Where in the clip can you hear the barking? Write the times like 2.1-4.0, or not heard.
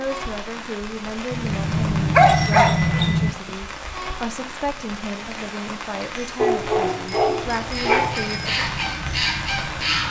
2.1-3.1, 6.3-8.2.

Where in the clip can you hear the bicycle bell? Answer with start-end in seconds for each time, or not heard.
1.3-3.3, 7.0-8.5.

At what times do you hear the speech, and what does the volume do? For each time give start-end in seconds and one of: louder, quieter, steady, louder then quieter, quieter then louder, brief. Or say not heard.
0.0-8.7 steady.